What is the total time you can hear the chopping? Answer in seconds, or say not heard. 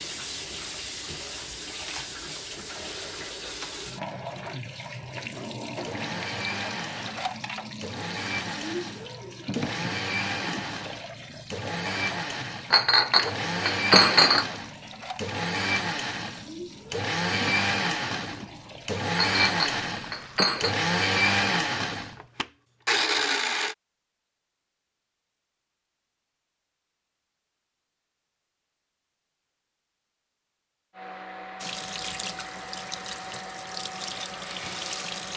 not heard.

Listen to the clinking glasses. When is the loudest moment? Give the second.
14 s.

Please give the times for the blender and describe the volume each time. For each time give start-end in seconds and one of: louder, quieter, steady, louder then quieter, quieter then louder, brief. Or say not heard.
5.8-23.8 louder
30.9-35.3 steady.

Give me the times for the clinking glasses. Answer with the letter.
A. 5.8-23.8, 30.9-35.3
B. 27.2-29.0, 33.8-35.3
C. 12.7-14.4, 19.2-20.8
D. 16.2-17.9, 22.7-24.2
C.